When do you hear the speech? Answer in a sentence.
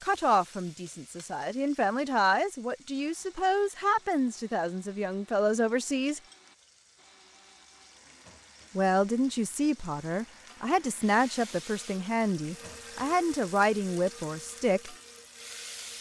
You can hear the speech from 0.0 to 6.2 s and from 8.8 to 14.9 s.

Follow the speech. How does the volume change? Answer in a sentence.
The volume of the speech stays about the same.